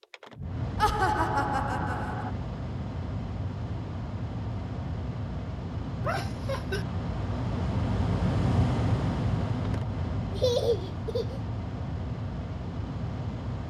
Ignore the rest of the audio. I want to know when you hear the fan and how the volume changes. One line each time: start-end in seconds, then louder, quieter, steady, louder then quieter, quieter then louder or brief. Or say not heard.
0.0-13.6 louder then quieter.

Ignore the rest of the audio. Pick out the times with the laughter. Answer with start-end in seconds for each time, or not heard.
0.8-2.3, 6.0-6.8, 10.3-11.4.